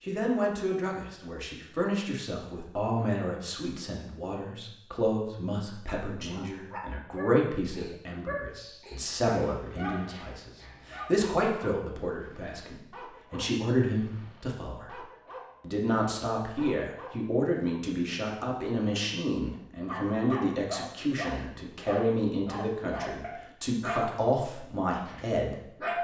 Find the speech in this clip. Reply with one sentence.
The speech can be heard from 0.0 to 14.9 s and from 15.6 to 25.9 s.